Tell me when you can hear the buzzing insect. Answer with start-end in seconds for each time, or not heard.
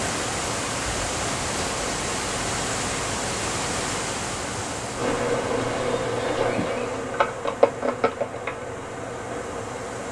5.0-10.0.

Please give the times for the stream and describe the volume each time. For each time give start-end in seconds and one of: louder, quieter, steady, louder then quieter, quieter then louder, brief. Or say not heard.
0.0-10.0 quieter.